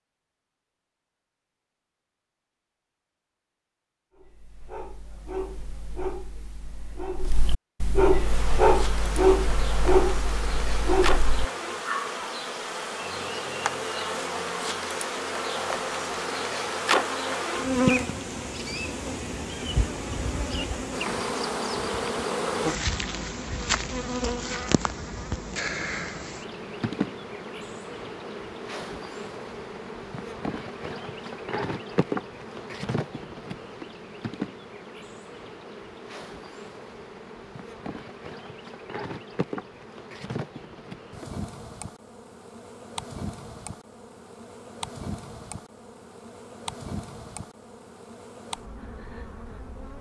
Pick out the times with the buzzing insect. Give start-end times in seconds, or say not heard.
8.2-49.9.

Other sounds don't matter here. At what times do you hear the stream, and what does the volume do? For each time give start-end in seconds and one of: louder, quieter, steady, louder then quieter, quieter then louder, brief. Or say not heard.
not heard.